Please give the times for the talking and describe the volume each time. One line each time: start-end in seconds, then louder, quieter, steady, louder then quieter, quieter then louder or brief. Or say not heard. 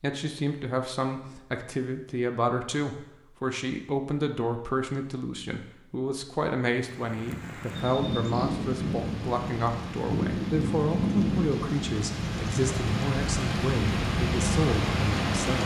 0.0-15.6 steady.